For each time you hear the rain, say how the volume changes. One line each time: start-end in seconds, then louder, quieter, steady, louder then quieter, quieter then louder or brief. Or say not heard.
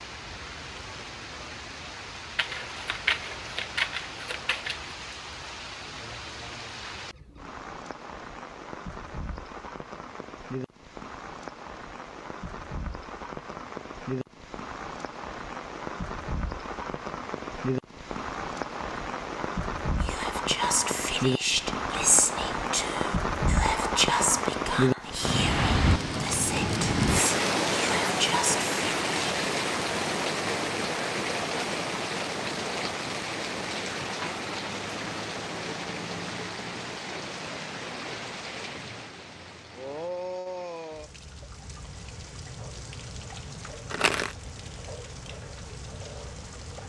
0.0-46.8 louder then quieter.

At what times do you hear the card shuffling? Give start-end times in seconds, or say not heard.
2.4-5.0, 43.6-44.4.